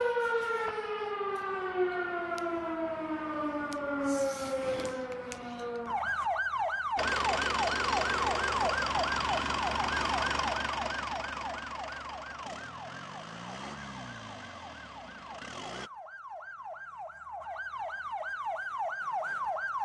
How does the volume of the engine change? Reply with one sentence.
The volume of the engine goes down.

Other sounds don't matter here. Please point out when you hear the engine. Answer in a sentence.
You can hear the engine from 7.0 to 15.9 s.